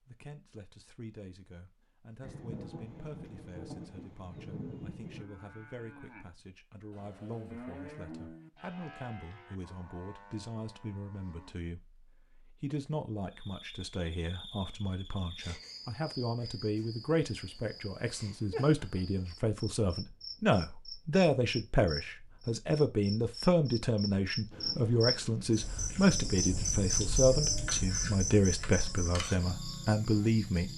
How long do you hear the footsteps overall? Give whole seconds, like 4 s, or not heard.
not heard.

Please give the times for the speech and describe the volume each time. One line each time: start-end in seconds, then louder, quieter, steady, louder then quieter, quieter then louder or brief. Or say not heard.
0.1-30.7 louder.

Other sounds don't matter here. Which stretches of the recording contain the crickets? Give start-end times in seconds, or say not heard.
13.3-30.7.